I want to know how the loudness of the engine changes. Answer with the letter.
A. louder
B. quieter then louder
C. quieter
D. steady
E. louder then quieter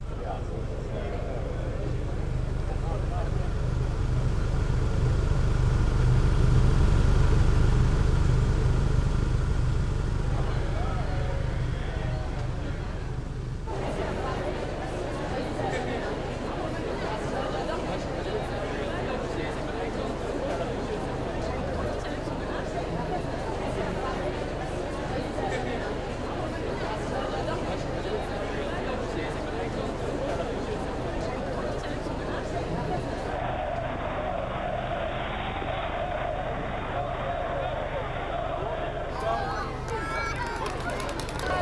C.